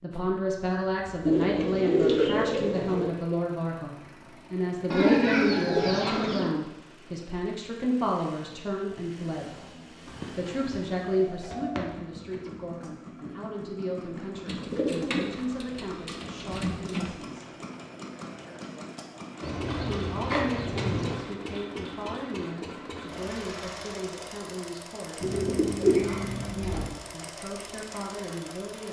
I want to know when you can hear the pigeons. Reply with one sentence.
You can hear the pigeons from 1.2 to 3.1 s, from 4.9 to 6.5 s, from 10.1 to 12.6 s, from 14.4 to 17.2 s, from 19.4 to 21.2 s and from 25.2 to 26.9 s.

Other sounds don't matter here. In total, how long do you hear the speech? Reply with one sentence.
You can hear the speech for 25 seconds altogether.